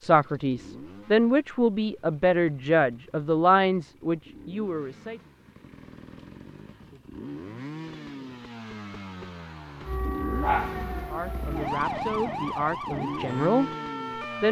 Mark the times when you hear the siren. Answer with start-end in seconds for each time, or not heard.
9.8-14.4.